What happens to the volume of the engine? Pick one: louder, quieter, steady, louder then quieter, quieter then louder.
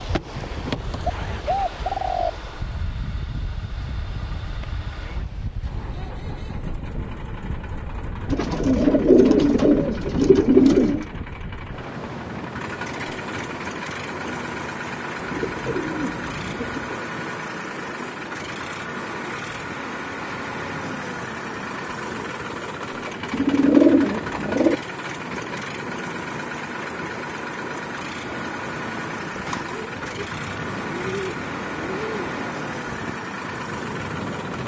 louder.